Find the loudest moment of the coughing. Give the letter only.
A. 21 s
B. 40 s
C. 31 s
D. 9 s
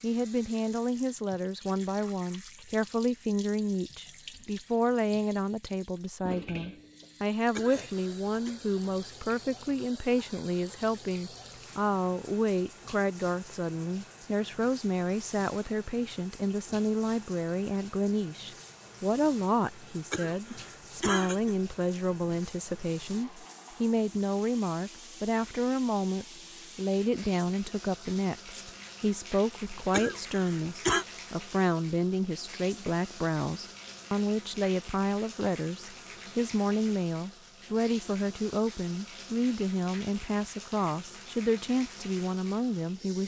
C.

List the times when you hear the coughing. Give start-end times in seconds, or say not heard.
7.5-8.5, 20.1-21.6, 29.9-31.1.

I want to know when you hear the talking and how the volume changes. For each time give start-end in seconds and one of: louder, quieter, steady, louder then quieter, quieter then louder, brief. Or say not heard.
0.0-43.2 steady.